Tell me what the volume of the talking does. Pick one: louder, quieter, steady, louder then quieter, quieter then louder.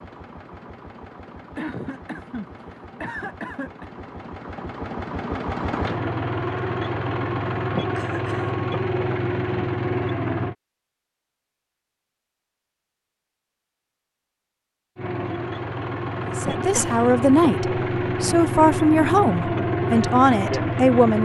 quieter then louder.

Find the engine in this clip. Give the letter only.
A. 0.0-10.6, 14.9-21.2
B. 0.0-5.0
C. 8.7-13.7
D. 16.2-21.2
A.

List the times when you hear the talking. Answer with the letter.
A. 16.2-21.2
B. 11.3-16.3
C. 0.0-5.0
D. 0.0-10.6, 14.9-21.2
A.